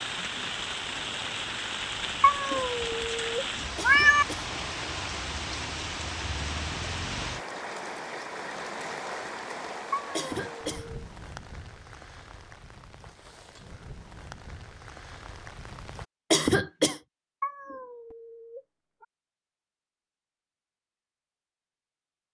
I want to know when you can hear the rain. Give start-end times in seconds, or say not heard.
0.0-16.1.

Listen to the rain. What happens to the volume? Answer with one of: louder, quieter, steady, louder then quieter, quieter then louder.
quieter.